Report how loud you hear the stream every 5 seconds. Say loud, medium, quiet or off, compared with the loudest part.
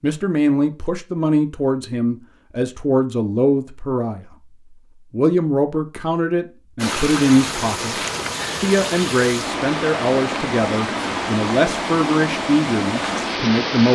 off, loud, loud.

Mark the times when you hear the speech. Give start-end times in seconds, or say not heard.
0.0-4.2, 5.1-8.0, 8.6-13.9.